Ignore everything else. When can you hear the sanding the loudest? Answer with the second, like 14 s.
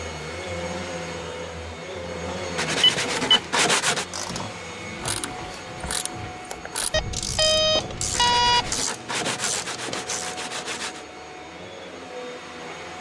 4 s.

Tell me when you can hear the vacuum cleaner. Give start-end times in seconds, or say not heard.
0.0-12.9.